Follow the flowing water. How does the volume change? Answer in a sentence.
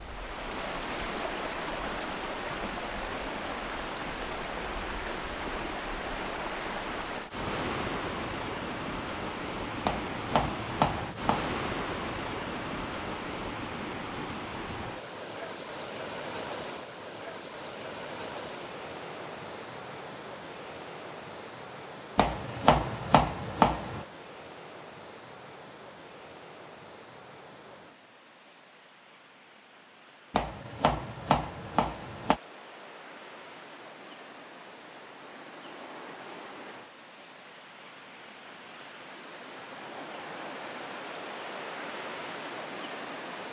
The volume of the flowing water goes down, then up.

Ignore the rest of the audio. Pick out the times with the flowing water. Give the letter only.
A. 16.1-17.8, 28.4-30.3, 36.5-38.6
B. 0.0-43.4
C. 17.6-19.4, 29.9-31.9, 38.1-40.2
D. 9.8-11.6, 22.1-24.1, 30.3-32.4
B.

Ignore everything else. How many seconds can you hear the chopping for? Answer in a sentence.
You can hear the chopping for 6 seconds altogether.